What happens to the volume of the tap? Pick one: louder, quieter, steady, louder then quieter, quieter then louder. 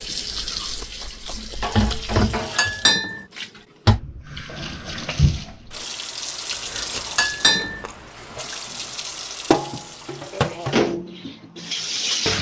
steady.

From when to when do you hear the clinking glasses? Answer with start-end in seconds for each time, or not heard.
2.5-3.2, 7.2-7.8.